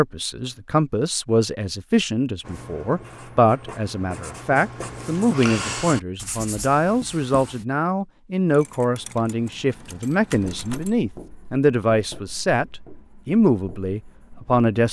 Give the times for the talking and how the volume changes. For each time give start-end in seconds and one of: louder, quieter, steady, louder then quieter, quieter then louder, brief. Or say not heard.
0.0-12.7 steady
13.2-14.8 brief.